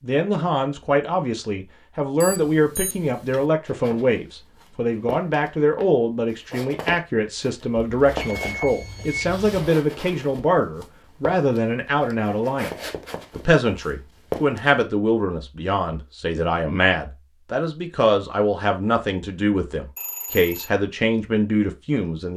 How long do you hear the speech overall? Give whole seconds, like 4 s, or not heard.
22 s.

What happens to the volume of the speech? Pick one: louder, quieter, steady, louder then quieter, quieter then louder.
steady.